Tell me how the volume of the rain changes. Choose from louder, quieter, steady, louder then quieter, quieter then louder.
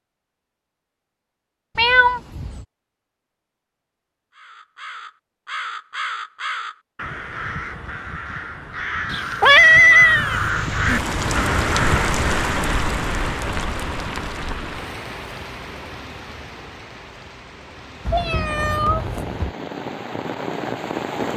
quieter then louder.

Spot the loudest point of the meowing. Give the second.
10 s.